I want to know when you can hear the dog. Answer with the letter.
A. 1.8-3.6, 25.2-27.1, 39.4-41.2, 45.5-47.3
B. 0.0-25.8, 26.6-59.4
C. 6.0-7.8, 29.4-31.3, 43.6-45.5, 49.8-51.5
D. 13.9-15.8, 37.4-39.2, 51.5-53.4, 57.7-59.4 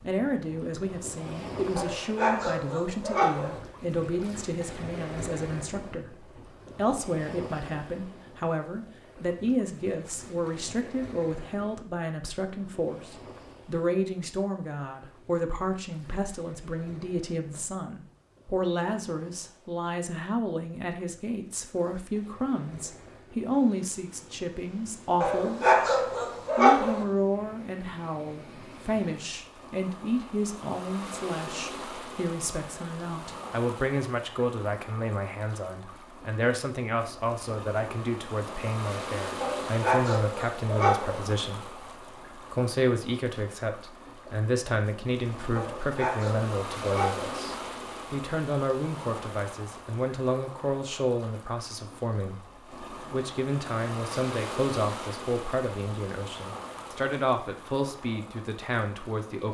A.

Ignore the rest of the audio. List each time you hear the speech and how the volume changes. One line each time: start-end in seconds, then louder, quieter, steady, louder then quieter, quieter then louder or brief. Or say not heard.
0.0-25.8 steady
26.6-59.4 steady.